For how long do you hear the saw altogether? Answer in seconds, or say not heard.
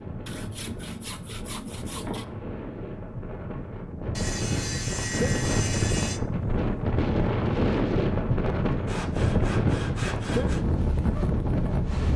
6 s.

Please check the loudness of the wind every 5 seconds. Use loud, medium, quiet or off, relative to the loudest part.
medium, loud, loud.